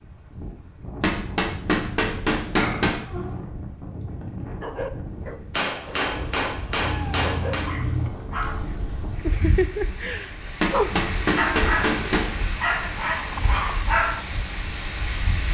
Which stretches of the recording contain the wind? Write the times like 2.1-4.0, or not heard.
0.0-15.4.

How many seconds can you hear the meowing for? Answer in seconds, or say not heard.
3 s.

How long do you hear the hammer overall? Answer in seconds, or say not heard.
6 s.